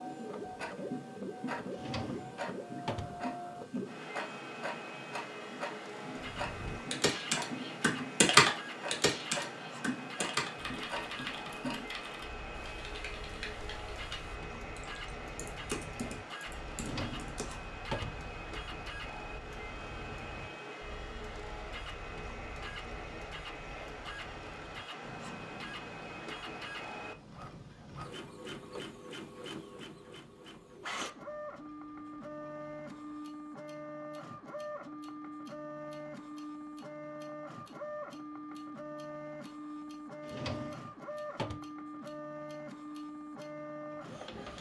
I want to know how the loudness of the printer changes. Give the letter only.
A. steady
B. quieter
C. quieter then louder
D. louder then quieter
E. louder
A.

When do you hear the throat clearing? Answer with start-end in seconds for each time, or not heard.
not heard.